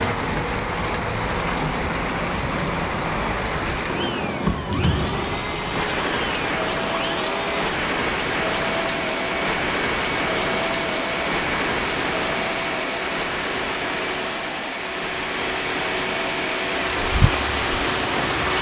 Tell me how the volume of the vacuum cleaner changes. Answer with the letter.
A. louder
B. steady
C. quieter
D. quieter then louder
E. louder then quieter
A.